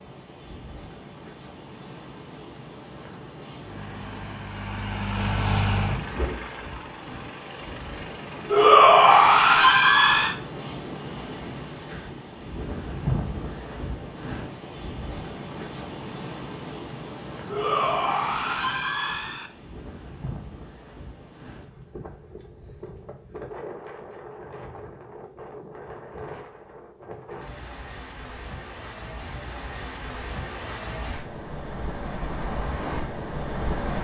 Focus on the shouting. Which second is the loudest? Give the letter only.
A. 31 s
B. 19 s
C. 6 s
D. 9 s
D.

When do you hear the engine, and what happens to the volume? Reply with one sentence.
You can hear the engine from 3.5 to 8.7 s, getting louder then quieter.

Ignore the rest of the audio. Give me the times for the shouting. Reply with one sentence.
The shouting can be heard from 8.5 to 10.3 s and from 17.5 to 19.5 s.